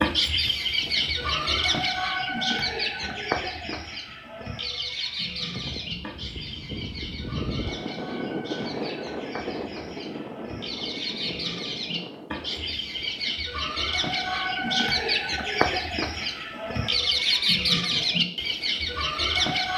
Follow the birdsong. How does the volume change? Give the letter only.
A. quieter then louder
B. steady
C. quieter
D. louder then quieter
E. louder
A.